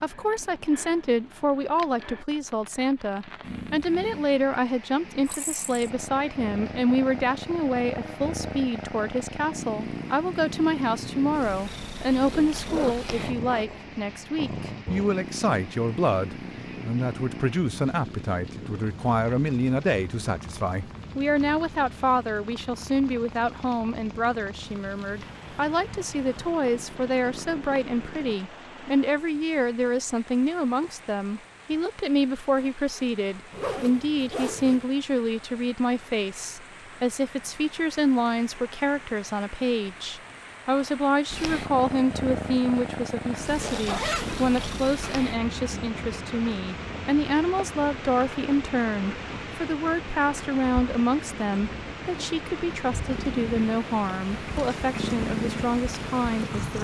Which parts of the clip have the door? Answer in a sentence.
The door can't be heard in this clip.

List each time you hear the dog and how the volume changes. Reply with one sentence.
The dog can't be heard in this clip.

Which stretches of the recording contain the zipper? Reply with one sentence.
The zipper can be heard from 12.2 to 13.7 s, from 33.5 to 34.9 s and from 43.5 to 44.4 s.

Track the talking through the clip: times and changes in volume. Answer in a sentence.
The talking can be heard from 0.0 to 56.8 s, at a steady volume.